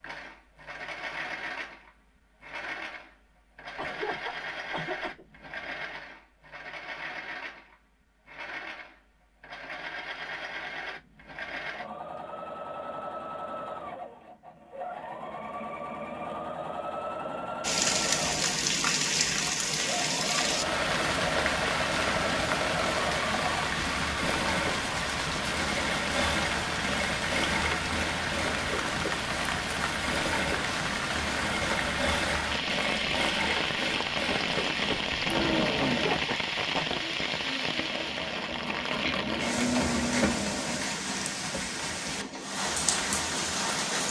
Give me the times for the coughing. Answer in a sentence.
You can hear the coughing from 3.8 to 5.2 s and from 35.9 to 37.0 s.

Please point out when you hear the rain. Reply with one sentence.
You can hear the rain from 17.6 to 44.0 s.